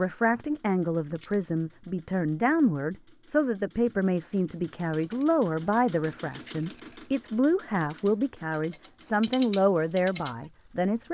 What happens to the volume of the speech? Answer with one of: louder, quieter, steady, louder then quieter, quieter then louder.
steady.